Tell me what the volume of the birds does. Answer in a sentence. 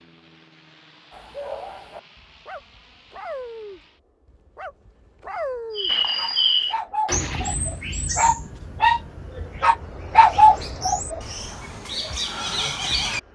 The volume of the birds goes down, then up.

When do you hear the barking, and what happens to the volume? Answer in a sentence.
The barking can be heard from 1.1 to 11.2 s, getting louder.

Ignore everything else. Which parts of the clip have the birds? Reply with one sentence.
You can hear the birds from 5.8 to 13.2 s.